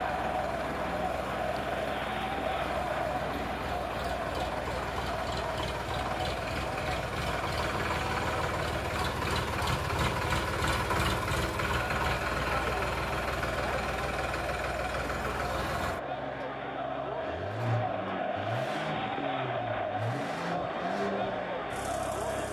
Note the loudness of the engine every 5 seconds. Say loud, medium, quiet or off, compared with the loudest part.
medium, loud, loud, medium, medium.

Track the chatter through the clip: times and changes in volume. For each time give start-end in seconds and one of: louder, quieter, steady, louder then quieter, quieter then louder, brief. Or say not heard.
0.0-22.4 quieter then louder.